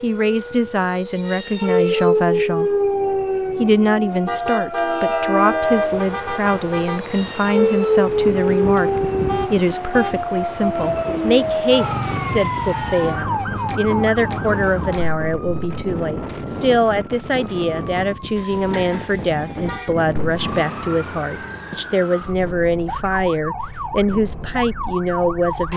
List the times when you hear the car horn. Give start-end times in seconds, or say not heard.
4.2-7.0, 8.8-10.2, 18.4-19.9.